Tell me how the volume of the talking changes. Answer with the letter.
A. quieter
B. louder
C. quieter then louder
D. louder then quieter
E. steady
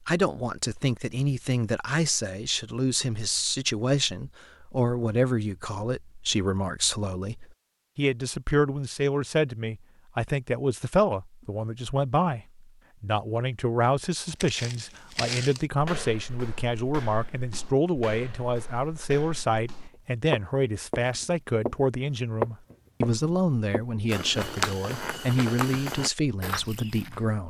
E.